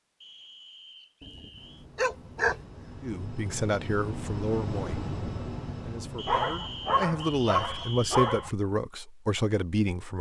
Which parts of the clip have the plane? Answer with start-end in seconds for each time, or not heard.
1.5-7.9.